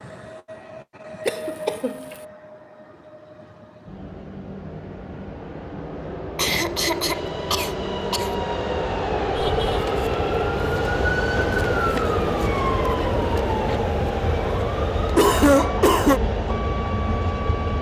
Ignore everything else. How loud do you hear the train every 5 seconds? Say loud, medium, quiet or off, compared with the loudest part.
quiet, loud, loud, loud.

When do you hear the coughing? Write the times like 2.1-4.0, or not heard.
1.2-2.1, 6.3-8.3, 15.2-16.2.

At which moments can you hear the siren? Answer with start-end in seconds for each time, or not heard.
9.3-17.7.